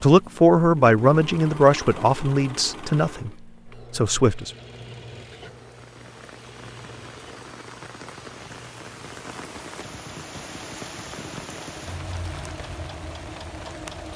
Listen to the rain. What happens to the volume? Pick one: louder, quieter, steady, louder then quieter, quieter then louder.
louder.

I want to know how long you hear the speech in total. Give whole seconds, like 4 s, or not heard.
4 s.